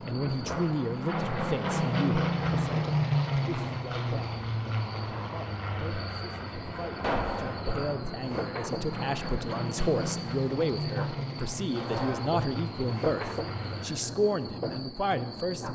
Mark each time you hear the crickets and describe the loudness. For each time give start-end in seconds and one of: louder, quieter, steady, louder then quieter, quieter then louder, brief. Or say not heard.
0.0-15.6 louder.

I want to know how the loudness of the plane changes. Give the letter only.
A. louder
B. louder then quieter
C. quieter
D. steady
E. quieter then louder
C.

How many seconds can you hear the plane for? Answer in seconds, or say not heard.
14 s.